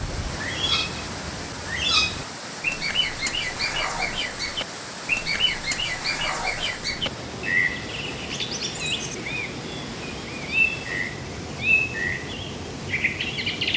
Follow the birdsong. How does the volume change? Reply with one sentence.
The loudness of the birdsong stays about the same.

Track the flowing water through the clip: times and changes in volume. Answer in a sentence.
You can hear the flowing water from 0.0 to 13.7 s, at a steady volume.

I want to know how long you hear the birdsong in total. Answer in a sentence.
The birdsong can be heard for 14 seconds in total.